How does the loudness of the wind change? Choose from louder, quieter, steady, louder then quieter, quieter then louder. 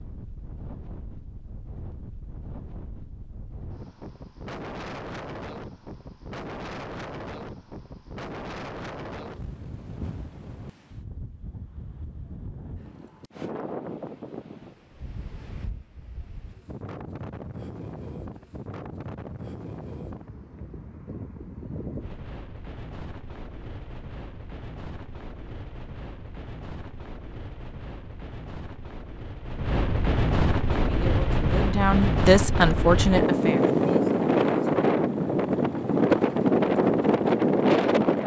louder.